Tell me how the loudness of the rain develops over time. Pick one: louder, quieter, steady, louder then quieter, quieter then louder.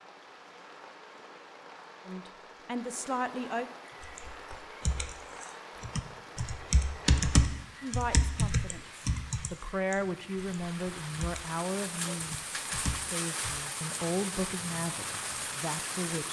louder.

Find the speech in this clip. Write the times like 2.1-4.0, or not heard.
2.0-3.6, 7.8-16.2.